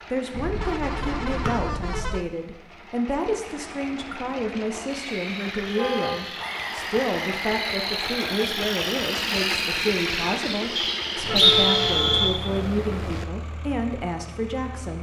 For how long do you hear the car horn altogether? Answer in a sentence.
You can hear the car horn for 5 seconds altogether.